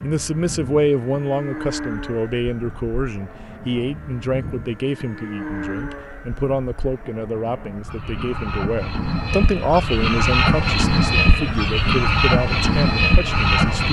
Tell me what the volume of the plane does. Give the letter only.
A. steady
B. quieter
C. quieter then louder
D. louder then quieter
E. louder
E.